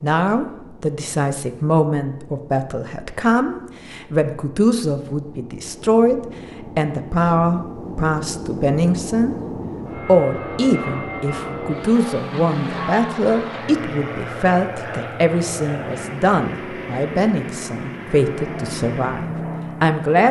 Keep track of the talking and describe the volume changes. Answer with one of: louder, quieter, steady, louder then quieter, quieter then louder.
steady.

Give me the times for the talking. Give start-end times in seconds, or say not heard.
0.0-9.3, 10.1-20.2.